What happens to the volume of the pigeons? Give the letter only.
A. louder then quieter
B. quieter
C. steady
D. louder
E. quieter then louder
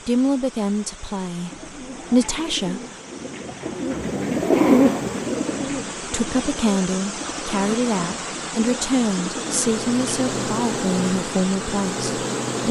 A.